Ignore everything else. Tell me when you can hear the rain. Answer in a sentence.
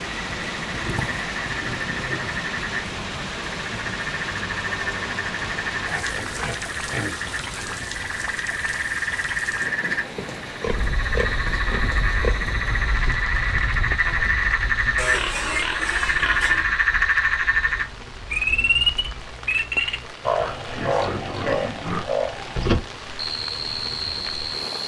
The rain can be heard from 0.0 to 24.8 s.